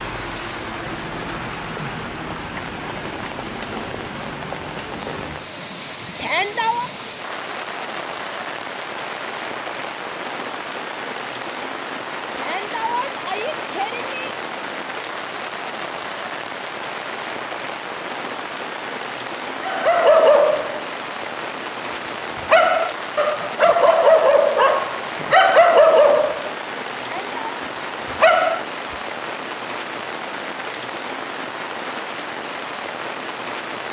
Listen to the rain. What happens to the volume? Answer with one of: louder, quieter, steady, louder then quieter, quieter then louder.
steady.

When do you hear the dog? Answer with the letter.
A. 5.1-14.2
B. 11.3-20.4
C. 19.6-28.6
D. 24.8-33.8
C.